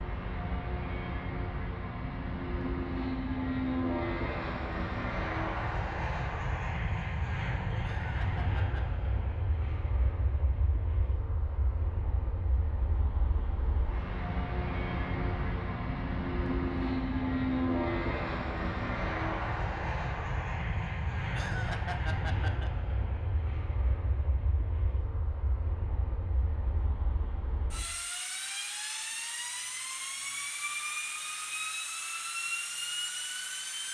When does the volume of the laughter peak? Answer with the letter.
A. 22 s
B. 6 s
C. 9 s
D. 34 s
A.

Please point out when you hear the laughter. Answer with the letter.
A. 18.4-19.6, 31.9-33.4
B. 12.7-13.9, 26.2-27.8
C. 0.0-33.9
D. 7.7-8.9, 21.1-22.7
D.